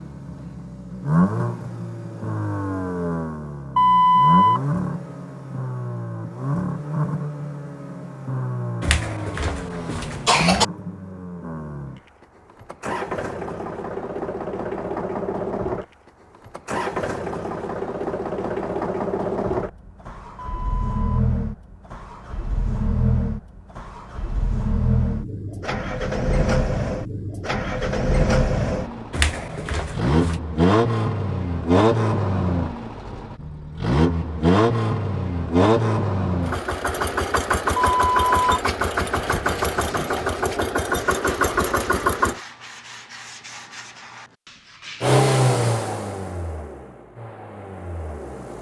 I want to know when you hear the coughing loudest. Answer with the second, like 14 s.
10 s.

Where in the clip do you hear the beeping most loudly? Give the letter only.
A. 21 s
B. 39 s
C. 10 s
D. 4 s
D.